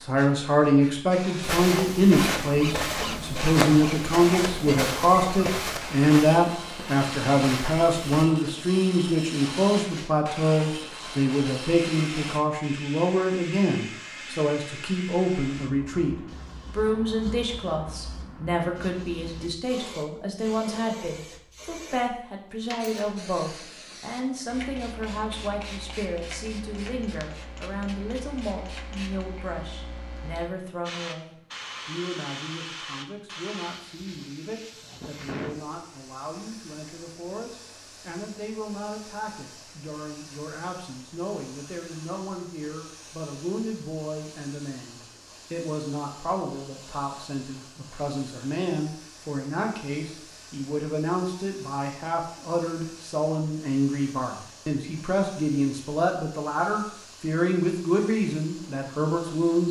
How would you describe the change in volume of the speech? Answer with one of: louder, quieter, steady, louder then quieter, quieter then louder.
quieter then louder.